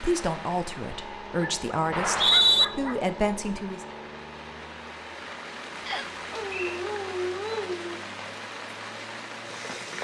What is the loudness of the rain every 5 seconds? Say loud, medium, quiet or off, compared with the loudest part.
medium, loud.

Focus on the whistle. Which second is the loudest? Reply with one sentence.
The loudest moment of the whistle is at 2 seconds.